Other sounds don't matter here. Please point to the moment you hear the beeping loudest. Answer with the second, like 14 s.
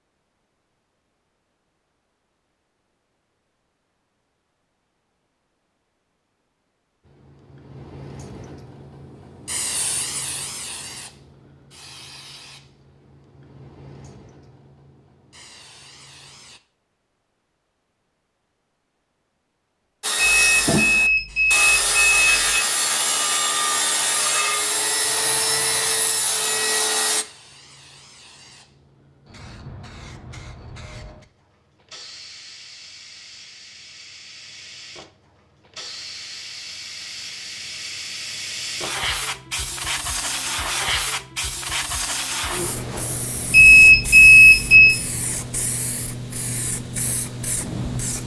44 s.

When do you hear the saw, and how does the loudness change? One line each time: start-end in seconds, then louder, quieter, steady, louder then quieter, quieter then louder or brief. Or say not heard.
20.0-27.2 steady.